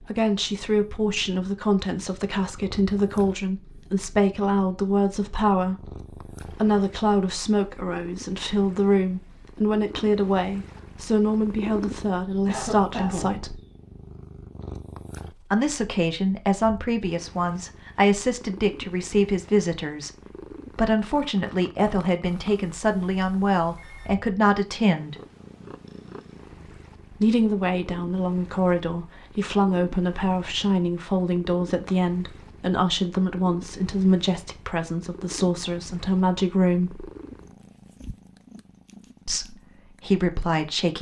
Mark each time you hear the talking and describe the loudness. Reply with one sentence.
The talking can be heard from 0.0 to 13.6 s, at a steady volume; from 15.5 to 25.1 s, at a steady volume; from 27.1 to 37.0 s, at a steady volume; and briefly from 39.2 to 40.9 s.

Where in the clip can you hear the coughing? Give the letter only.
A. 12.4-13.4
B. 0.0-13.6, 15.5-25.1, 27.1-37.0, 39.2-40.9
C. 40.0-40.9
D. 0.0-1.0
A.